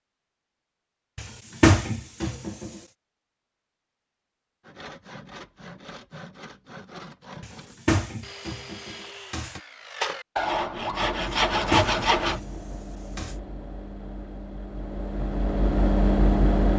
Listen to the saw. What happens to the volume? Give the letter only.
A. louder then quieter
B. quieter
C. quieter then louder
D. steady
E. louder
E.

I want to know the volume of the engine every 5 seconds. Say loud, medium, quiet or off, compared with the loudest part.
off, off, quiet, loud.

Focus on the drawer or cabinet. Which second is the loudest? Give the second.
2 s.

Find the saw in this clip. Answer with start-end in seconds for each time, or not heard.
4.6-12.4.